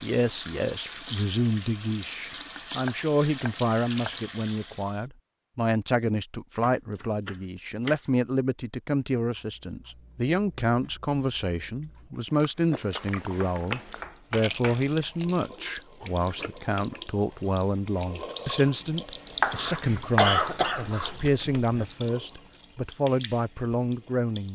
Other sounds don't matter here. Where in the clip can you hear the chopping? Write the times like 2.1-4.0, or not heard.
2.8-4.2, 6.6-8.1, 13.4-14.8, 19.4-21.1.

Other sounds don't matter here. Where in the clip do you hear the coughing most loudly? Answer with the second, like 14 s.
20 s.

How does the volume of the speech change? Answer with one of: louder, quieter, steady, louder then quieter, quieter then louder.
steady.